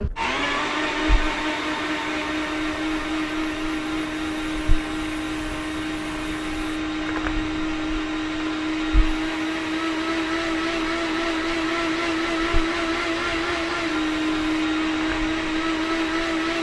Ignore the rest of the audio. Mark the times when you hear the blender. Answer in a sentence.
The blender can be heard from 0.0 to 16.5 s.